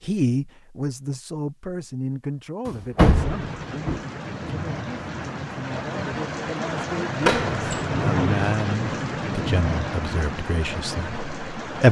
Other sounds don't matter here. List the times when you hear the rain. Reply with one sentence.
The rain can be heard from 3.1 to 11.8 s.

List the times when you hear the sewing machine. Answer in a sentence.
The sewing machine can't be heard in this clip.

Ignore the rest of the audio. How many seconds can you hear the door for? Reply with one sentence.
The door can be heard for 2 seconds in total.